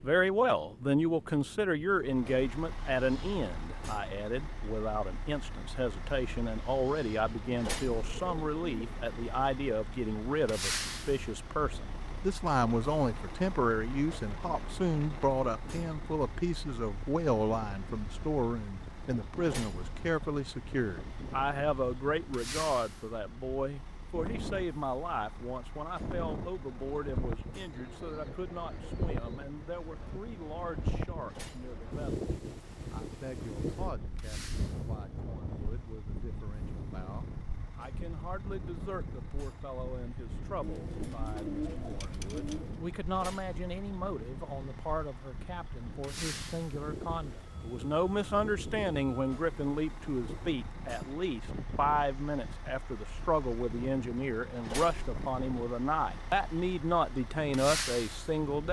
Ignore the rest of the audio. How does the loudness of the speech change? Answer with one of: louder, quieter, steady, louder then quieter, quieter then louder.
quieter then louder.